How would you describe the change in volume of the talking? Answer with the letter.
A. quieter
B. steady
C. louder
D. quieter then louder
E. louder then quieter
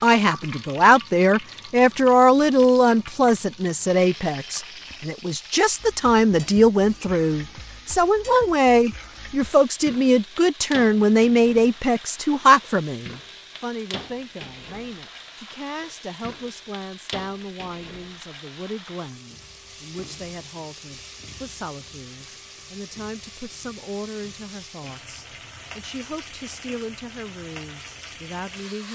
A.